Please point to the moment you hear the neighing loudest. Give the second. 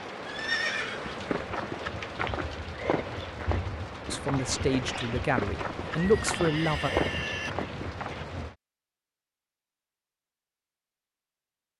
1 s.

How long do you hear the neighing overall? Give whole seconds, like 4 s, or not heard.
3 s.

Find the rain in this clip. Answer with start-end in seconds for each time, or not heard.
0.0-8.6.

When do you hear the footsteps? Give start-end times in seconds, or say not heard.
1.1-8.2.